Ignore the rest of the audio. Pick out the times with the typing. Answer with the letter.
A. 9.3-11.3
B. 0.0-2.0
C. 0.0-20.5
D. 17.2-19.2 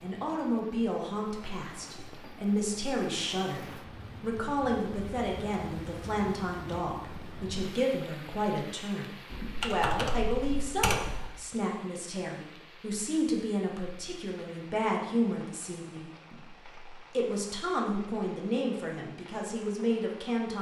A.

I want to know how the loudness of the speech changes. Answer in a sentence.
The volume of the speech stays about the same.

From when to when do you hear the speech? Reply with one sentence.
The speech can be heard from 0.0 to 20.5 s.